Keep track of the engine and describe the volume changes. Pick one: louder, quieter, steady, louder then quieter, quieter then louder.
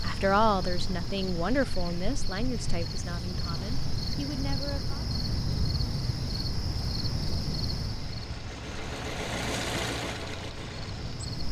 louder.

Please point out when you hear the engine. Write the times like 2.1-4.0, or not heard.
0.1-11.4.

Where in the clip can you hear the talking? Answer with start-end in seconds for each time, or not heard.
0.0-5.0.